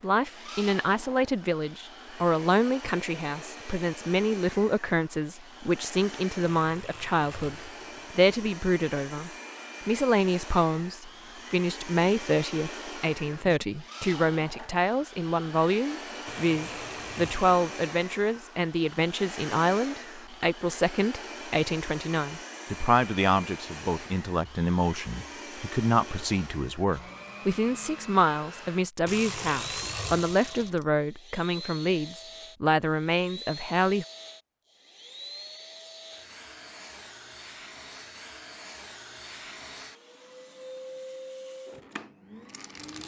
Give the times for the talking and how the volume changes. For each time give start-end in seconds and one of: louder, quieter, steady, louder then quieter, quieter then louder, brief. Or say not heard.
0.0-34.0 steady.